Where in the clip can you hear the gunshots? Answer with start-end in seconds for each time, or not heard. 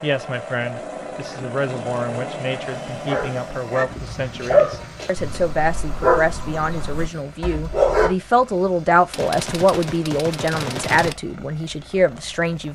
9.1-11.2.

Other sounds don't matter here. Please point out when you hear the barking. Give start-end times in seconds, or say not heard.
2.9-8.2.